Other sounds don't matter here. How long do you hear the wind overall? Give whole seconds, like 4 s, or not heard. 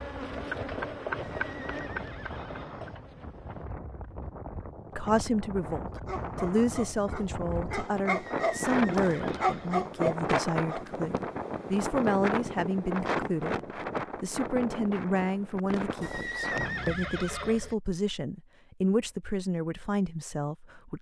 17 s.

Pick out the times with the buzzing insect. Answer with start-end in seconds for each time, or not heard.
0.0-3.6.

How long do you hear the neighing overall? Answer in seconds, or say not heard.
5 s.